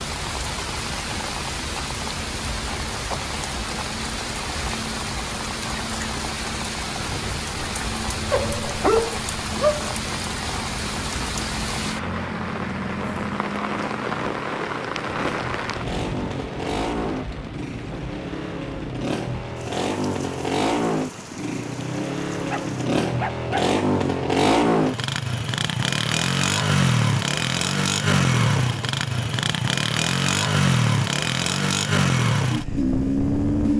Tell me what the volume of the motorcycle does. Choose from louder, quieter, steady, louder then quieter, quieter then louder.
louder.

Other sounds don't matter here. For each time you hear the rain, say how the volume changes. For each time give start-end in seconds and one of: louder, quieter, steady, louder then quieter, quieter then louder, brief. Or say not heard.
0.0-22.9 quieter.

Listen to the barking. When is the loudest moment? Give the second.
9 s.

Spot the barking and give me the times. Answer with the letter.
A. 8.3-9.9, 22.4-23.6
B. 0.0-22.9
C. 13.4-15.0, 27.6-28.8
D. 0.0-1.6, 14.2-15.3
A.